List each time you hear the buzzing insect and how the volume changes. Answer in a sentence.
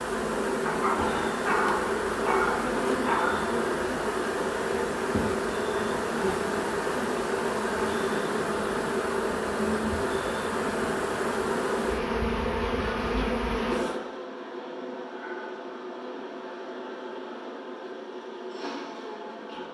The buzzing insect can be heard from 0.0 to 19.6 s, getting quieter.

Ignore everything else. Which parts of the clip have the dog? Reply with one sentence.
You can hear the dog from 0.7 to 3.4 s.